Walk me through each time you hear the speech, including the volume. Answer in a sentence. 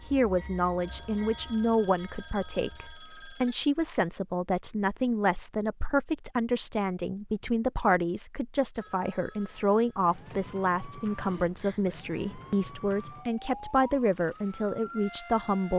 You can hear the speech from 0.1 to 15.7 s, at a steady volume.